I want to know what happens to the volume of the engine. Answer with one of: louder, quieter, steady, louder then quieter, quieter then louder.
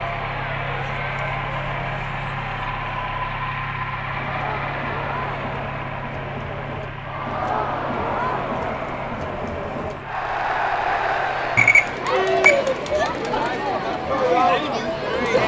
quieter.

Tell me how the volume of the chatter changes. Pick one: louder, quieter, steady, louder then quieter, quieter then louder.
louder.